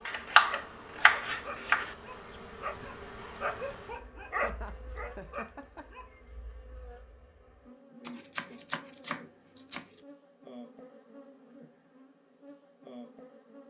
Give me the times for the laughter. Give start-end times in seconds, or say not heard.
4.3-6.0.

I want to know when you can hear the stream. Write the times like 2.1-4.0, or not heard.
not heard.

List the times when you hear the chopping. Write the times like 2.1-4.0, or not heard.
0.1-1.9, 8.1-10.0.